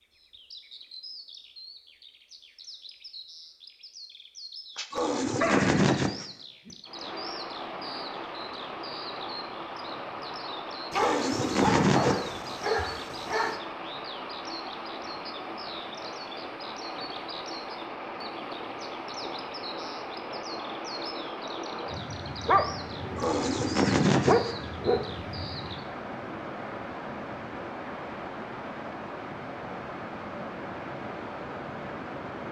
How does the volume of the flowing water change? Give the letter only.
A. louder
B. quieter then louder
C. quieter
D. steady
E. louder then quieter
D.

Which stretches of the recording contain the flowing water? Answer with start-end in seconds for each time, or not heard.
6.8-32.4.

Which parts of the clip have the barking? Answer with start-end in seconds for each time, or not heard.
4.8-5.9, 10.9-13.6, 22.4-23.4, 24.2-25.0.